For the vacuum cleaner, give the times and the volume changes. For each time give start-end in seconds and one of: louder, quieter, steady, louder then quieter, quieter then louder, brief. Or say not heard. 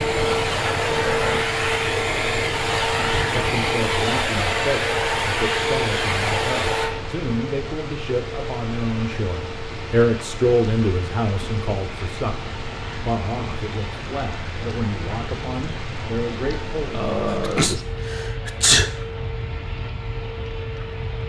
0.0-21.2 quieter.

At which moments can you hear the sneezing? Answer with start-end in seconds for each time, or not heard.
17.3-18.9.